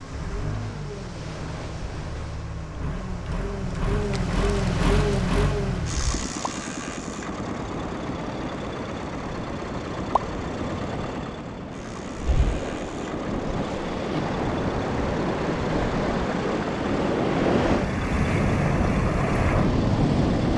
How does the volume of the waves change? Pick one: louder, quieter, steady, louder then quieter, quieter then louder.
louder.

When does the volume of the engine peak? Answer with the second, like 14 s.
5 s.